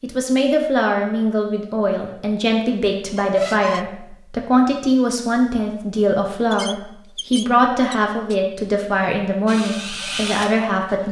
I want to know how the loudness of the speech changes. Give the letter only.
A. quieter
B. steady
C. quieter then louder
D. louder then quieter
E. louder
B.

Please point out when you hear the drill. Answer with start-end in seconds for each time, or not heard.
9.4-11.0.